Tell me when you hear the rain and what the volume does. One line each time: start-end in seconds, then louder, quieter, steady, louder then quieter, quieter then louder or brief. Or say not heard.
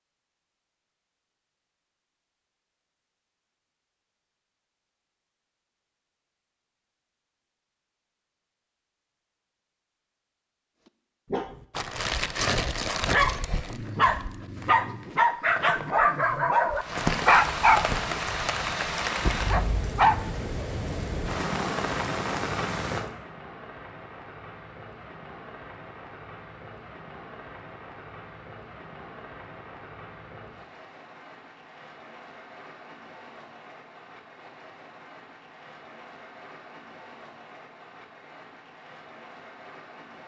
16.8-40.2 quieter.